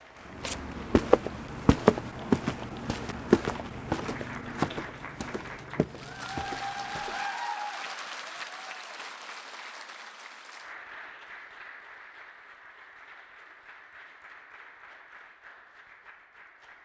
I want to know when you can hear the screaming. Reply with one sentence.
You can't hear the screaming here.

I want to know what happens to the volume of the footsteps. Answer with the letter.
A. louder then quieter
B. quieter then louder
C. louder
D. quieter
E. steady
D.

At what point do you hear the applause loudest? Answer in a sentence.
The loudest moment of the applause is at 7 seconds.